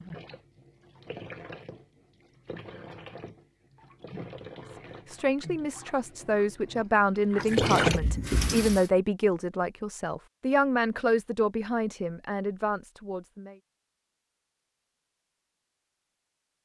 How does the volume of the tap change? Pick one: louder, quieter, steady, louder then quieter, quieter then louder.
louder.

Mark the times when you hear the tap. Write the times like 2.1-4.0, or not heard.
0.0-8.9.